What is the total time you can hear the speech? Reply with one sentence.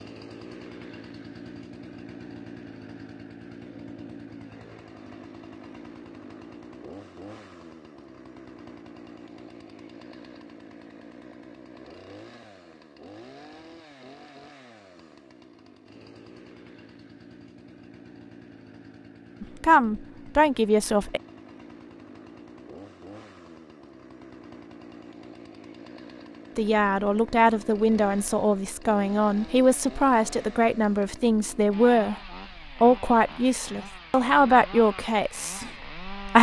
You can hear the speech for 11 seconds altogether.